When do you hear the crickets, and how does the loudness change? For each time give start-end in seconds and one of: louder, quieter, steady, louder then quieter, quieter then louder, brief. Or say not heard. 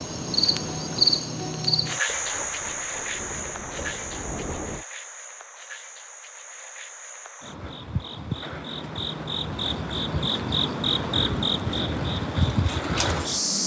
0.0-13.6 quieter then louder.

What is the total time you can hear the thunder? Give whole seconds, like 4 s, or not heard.
3 s.